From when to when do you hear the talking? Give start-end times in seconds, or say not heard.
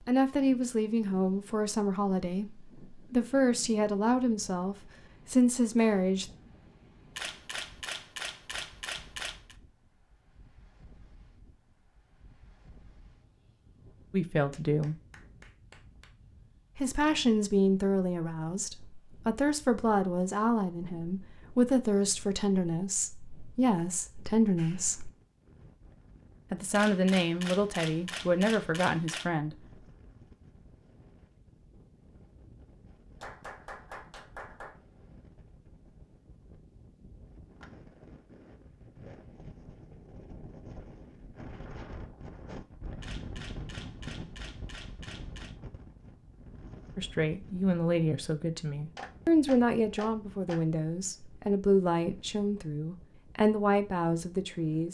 0.1-6.3, 14.1-14.9, 16.8-25.1, 26.5-29.6, 47.0-54.8.